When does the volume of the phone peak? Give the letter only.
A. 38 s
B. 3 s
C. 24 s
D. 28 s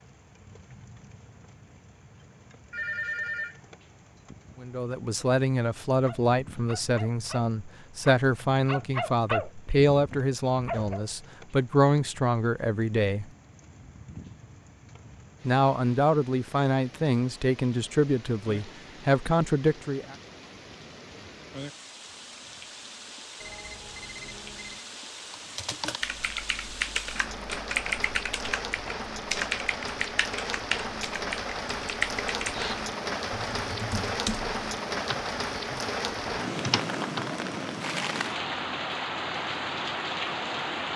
B.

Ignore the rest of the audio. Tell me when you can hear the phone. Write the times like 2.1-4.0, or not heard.
2.7-3.6, 23.4-24.9.